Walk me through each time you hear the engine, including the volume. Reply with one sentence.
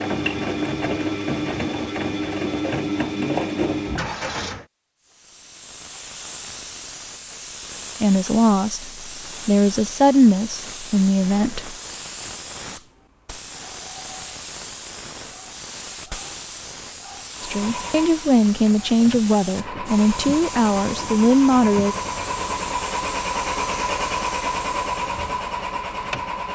You can hear the engine from 0.0 to 4.7 s, at a steady volume; and from 17.4 to 26.5 s, getting louder.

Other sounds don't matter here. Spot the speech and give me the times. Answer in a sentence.
The speech can be heard from 8.0 to 11.8 s and from 17.4 to 21.9 s.